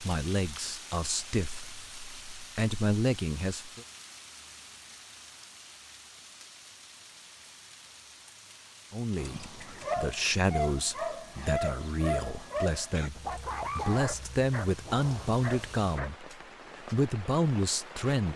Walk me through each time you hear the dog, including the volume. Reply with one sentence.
The dog can be heard from 9.2 to 16.1 s, getting quieter.